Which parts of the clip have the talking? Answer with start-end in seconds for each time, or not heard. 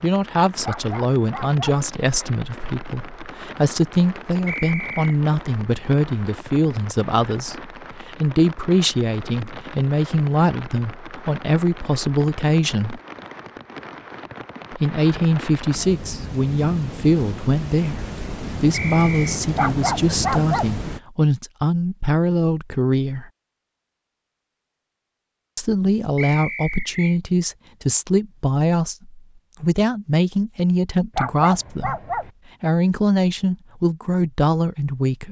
0.0-13.0, 14.7-23.2, 25.6-31.9, 32.6-35.2.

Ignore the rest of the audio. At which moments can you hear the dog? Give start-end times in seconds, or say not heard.
0.6-1.8, 19.6-20.8, 31.1-32.3.